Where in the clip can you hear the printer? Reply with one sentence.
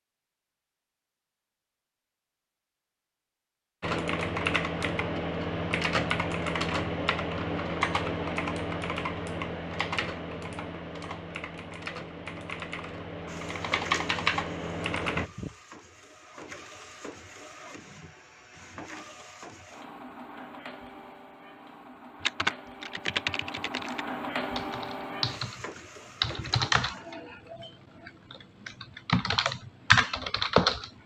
You can hear the printer from 13.2 to 27.1 s.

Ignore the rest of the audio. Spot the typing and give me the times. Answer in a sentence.
You can hear the typing from 3.8 to 15.3 s and from 22.2 to 30.9 s.